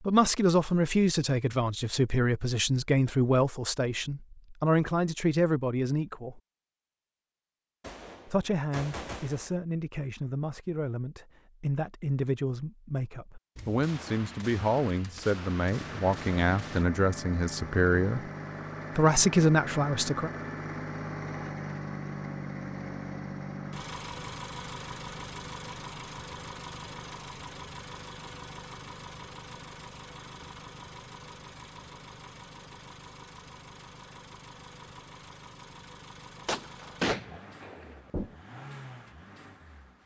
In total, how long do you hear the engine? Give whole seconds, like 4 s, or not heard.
24 s.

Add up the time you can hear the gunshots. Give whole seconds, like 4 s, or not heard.
7 s.